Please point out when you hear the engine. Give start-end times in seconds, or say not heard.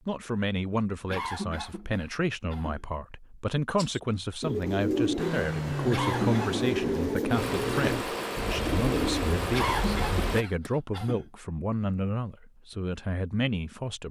5.2-10.4.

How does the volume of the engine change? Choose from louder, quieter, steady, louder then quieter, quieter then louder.
quieter then louder.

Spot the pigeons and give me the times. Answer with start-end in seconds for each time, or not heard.
3.8-10.7.